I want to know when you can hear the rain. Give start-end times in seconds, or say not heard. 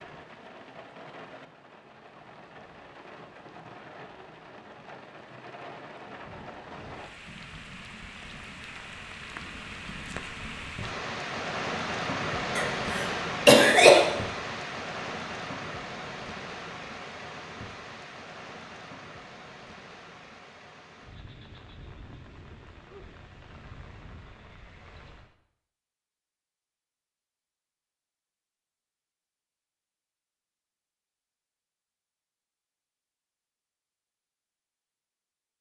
0.0-25.4.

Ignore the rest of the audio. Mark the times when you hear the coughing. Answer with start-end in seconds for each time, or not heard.
12.6-14.1.